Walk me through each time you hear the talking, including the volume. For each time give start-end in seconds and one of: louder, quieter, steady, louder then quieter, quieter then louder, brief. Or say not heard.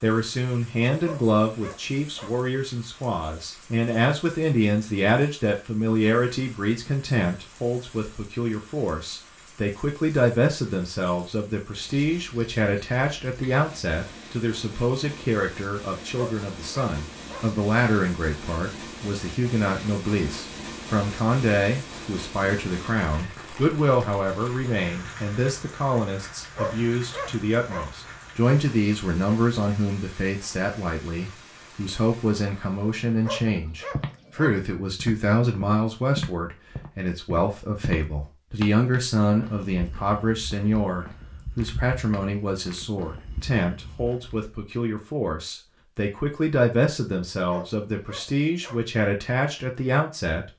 0.0-50.5 steady.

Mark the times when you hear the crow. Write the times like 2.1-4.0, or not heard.
not heard.